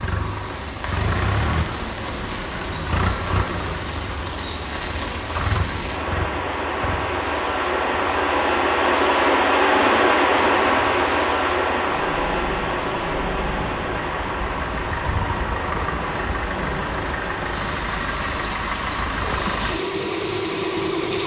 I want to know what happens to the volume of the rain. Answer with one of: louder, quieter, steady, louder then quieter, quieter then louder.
louder then quieter.